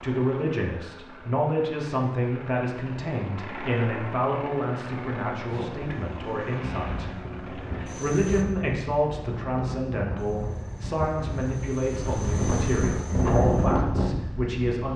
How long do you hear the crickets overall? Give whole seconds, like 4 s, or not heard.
not heard.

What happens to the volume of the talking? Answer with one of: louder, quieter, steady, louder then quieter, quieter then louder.
steady.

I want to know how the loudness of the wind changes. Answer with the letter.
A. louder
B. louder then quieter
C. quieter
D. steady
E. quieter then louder
A.